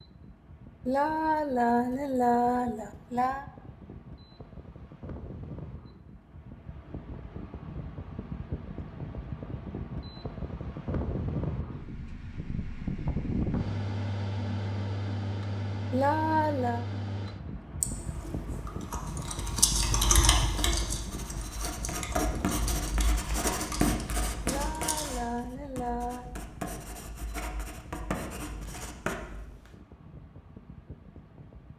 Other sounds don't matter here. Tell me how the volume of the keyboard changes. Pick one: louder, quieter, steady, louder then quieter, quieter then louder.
louder then quieter.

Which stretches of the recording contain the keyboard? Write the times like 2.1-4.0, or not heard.
17.8-25.2.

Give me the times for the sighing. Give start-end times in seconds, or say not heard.
0.8-3.5, 15.9-16.9, 24.4-26.3.